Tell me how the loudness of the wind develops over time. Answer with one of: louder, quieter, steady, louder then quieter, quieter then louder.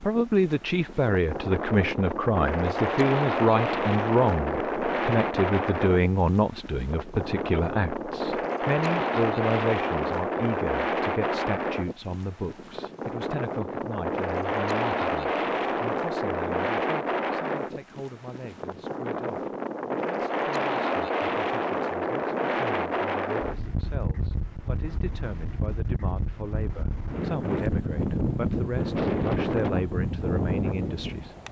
steady.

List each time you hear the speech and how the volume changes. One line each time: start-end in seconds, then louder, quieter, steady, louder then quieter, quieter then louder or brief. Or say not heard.
0.0-31.3 quieter then louder.